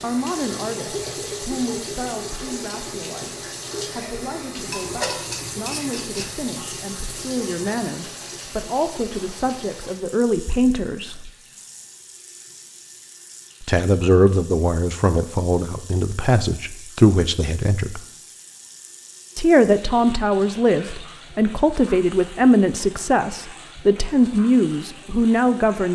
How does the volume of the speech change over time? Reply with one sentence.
The loudness of the speech goes up.